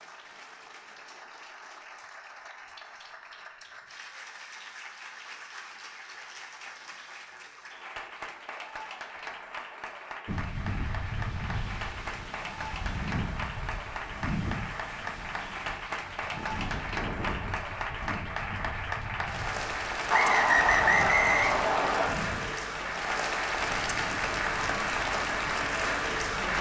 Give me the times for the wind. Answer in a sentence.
You can hear the wind from 10.2 to 26.5 s.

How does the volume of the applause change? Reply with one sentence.
The loudness of the applause goes up.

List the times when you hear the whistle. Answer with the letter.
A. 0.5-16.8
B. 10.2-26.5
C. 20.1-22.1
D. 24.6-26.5
C.